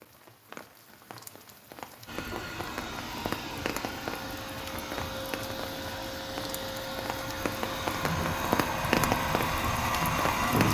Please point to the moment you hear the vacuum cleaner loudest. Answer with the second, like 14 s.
10 s.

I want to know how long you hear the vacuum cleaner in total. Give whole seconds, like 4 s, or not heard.
9 s.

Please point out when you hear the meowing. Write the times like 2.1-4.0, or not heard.
not heard.